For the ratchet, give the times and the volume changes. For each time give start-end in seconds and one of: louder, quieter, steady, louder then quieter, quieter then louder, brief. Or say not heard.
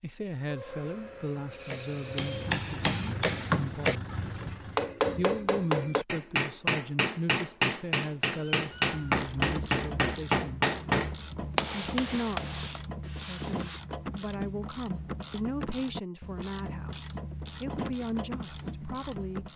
8.6-19.5 steady.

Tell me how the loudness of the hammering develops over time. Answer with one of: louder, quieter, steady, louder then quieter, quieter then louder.
steady.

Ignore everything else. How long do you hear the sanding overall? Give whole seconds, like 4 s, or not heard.
4 s.